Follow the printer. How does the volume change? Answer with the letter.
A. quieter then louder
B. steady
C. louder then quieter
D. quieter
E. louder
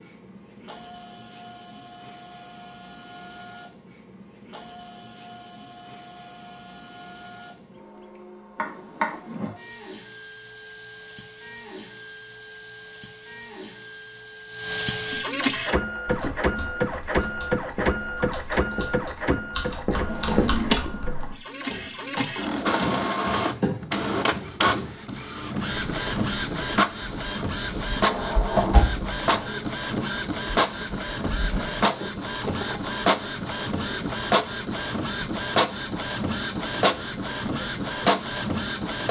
E.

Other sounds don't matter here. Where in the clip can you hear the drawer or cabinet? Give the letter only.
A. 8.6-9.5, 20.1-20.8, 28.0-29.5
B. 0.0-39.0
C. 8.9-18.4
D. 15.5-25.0
A.